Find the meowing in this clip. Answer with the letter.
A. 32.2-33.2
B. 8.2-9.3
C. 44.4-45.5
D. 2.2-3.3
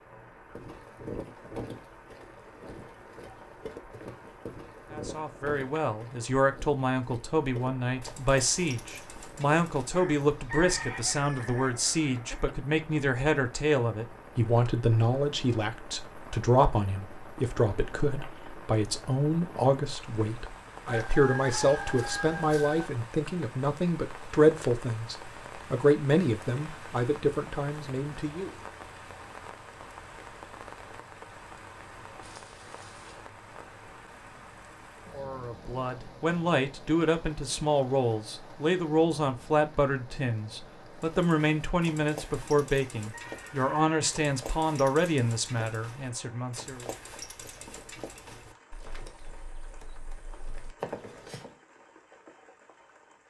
A.